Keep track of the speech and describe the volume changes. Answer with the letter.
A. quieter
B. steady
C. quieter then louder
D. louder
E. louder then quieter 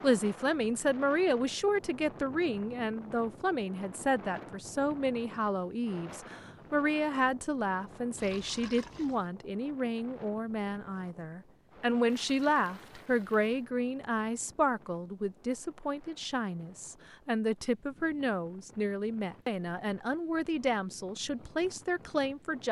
B.